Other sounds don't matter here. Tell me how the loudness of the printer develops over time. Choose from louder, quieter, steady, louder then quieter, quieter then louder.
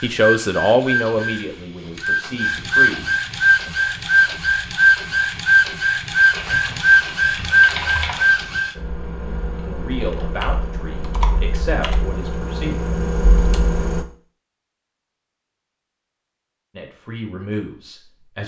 louder.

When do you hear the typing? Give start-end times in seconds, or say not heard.
6.0-14.1.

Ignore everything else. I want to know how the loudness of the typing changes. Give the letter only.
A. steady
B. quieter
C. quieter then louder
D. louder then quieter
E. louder
E.